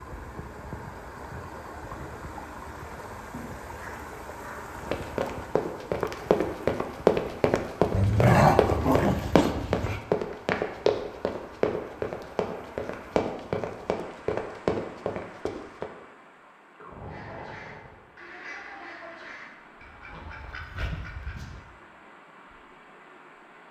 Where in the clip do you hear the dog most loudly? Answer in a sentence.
The loudest moment of the dog is at 8 seconds.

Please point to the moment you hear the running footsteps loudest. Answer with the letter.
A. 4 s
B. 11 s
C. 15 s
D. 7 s
D.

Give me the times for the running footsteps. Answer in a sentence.
You can hear the running footsteps from 4.8 to 15.8 s.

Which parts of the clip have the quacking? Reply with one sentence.
The quacking can be heard from 16.9 to 21.6 s.